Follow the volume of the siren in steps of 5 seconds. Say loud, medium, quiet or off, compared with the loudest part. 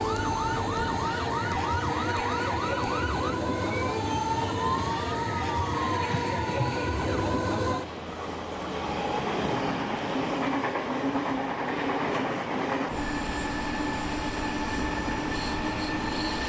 loud, loud, off, off.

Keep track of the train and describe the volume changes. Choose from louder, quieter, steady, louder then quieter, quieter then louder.
steady.